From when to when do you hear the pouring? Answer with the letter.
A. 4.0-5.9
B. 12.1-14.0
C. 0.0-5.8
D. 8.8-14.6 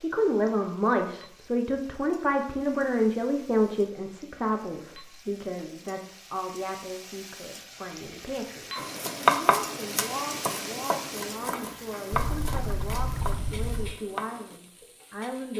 B.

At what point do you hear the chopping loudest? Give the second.
9 s.